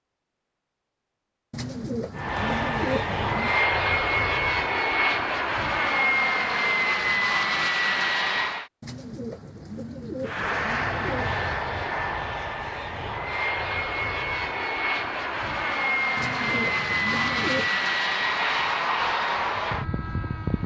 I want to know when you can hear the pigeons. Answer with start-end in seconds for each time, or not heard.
1.5-3.6, 8.8-11.5, 16.1-17.8.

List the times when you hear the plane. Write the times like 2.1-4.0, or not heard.
2.1-8.7, 10.2-20.6.